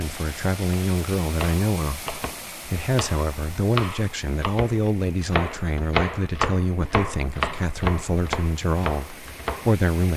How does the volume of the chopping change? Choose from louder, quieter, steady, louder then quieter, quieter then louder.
louder.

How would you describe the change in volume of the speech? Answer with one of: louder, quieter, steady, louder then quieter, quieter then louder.
steady.